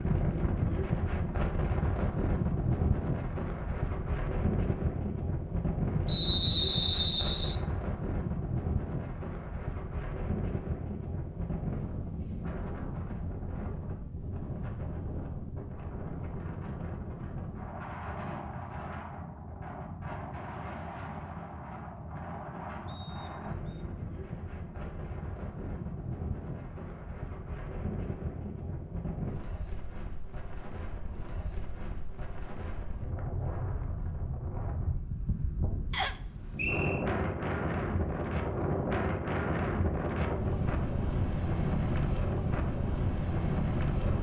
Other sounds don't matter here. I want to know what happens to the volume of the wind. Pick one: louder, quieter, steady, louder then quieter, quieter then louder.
quieter then louder.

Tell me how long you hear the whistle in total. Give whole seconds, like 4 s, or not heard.
4 s.